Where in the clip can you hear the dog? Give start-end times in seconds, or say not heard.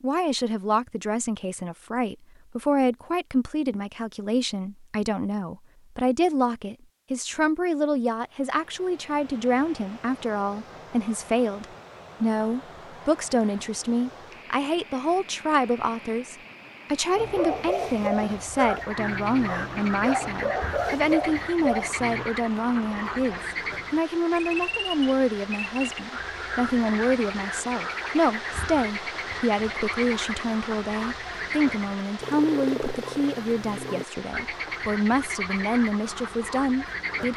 17.1-22.3.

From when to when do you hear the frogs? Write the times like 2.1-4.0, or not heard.
18.6-37.3.